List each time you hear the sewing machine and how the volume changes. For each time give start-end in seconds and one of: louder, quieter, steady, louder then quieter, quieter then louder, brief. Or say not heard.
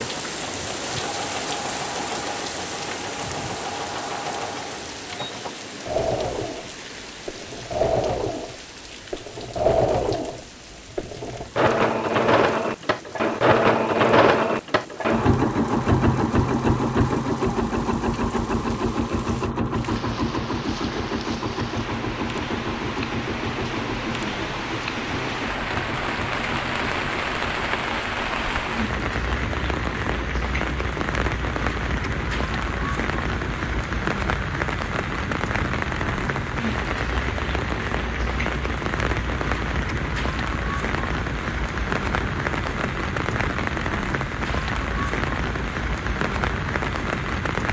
0.0-47.6 louder then quieter.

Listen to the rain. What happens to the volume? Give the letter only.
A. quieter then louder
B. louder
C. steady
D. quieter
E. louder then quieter
A.